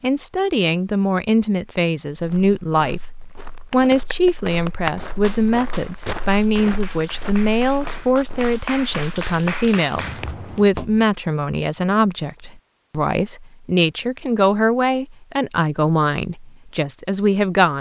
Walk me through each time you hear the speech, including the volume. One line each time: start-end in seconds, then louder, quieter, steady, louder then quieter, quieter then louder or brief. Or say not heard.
0.0-17.7 steady.